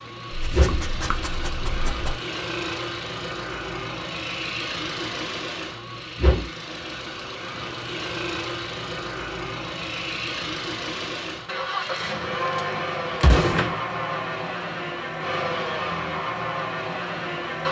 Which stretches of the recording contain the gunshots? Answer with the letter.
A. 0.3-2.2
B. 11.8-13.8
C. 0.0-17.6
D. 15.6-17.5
B.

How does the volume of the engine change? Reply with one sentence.
The volume of the engine stays about the same.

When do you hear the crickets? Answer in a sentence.
The crickets can't be heard in this clip.